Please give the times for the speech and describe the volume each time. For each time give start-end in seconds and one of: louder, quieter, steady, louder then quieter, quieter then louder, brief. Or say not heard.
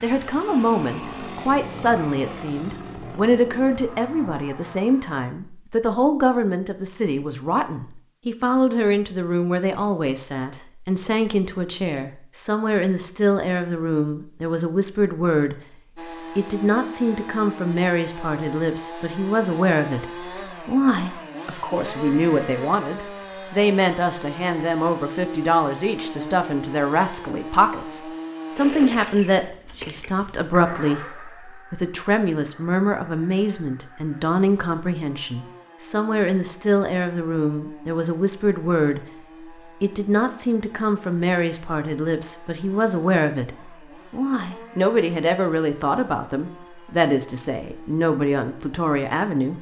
0.0-15.6 steady
16.4-39.0 steady
39.8-49.5 steady.